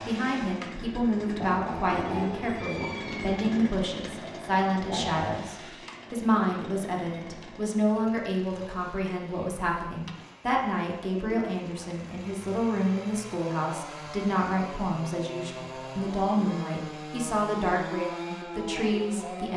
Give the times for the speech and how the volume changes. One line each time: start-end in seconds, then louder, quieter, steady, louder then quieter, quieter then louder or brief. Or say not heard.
0.1-19.5 steady.